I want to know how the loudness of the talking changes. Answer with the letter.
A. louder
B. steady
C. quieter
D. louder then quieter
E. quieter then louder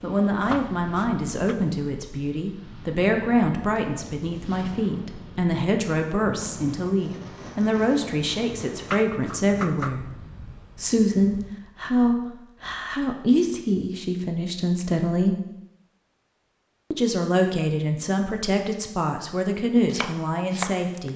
B.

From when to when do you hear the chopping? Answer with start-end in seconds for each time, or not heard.
0.0-1.6, 8.8-10.0, 19.8-21.1.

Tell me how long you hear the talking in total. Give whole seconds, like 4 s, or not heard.
19 s.